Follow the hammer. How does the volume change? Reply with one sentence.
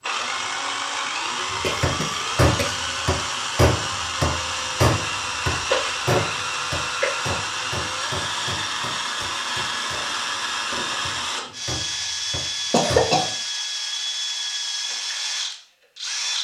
The loudness of the hammer goes down.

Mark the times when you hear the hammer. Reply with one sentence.
The hammer can be heard from 1.5 to 13.1 s.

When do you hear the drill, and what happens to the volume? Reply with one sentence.
The drill can be heard from 0.0 to 16.3 s, at a steady volume.